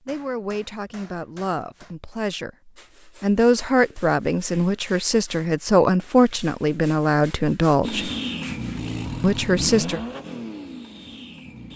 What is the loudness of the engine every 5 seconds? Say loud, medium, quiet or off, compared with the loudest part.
off, loud, medium.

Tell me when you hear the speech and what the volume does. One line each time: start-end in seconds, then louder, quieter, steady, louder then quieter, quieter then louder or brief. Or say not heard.
0.1-8.1 louder
9.2-10.0 brief.